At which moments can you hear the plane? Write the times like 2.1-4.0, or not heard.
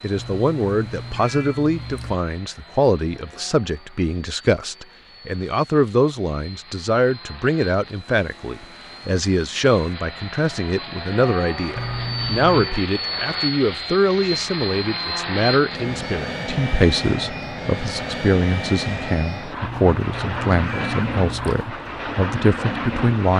0.0-23.3.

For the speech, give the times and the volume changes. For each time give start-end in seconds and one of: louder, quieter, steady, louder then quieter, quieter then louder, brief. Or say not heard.
0.0-23.3 steady.